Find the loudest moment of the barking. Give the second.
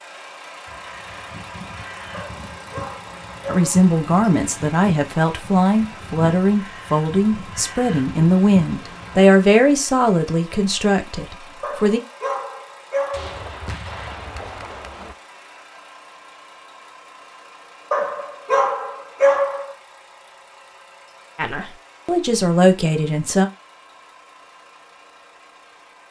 19 s.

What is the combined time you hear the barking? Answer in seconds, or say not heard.
5 s.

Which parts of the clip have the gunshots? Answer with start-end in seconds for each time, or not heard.
13.1-15.2.